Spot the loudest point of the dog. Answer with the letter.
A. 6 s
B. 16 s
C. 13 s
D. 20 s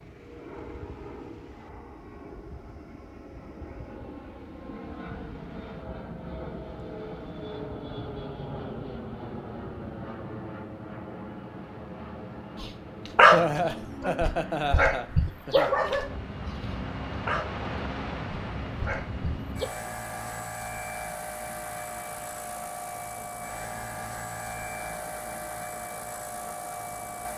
C.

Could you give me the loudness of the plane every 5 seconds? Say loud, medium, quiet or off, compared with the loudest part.
medium, loud, loud, loud, loud, loud.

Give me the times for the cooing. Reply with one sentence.
You can't hear the cooing here.